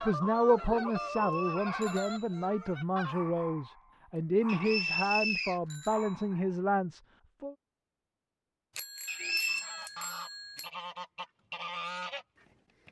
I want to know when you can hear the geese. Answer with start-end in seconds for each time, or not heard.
0.0-3.1, 9.4-12.8.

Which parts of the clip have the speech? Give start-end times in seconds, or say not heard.
0.0-7.5.